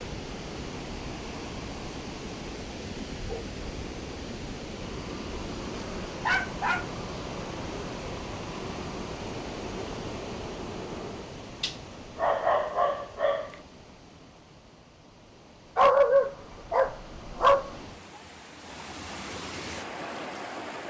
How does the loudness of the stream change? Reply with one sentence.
The volume of the stream goes down, then up.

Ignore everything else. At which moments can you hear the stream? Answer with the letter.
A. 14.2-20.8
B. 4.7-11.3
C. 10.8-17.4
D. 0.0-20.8
D.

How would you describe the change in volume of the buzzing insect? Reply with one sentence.
The loudness of the buzzing insect stays about the same.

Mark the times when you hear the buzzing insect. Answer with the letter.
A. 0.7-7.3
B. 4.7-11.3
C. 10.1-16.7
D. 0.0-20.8
B.